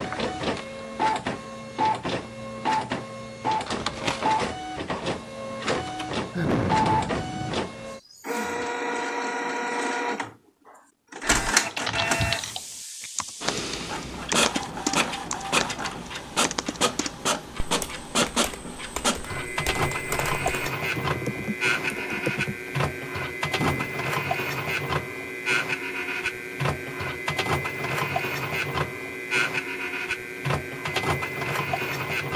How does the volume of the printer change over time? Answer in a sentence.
The volume of the printer stays about the same.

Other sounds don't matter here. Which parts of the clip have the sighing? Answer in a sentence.
You can hear the sighing from 6.3 to 7.6 s, from 12.0 to 12.4 s and from 23.6 to 24.0 s.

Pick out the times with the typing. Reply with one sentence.
You can hear the typing from 11.2 to 22.7 s.